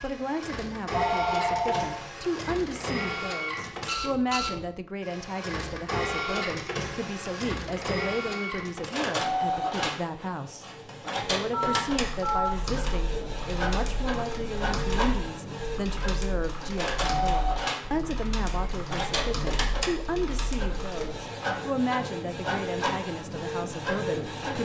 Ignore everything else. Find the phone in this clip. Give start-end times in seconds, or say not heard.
0.9-1.9, 11.5-12.5, 17.8-19.0.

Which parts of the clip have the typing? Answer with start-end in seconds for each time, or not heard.
11.9-21.1.